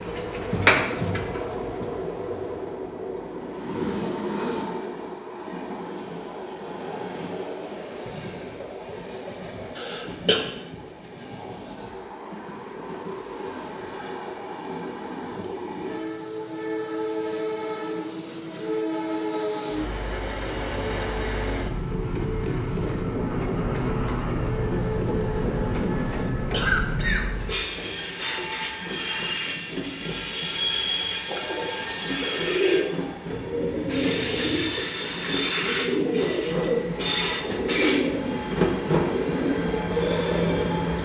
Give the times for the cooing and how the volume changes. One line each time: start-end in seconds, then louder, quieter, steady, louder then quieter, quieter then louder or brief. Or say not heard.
0.0-1.4 brief
31.2-40.9 steady.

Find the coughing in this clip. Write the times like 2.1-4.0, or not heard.
9.8-10.4, 26.0-27.2.